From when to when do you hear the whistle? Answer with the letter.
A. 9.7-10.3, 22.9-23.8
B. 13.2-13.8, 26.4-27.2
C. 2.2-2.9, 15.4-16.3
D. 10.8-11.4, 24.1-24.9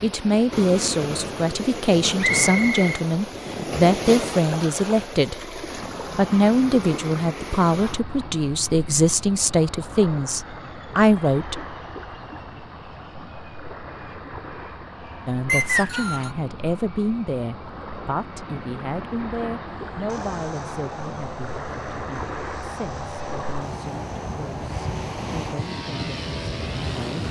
C.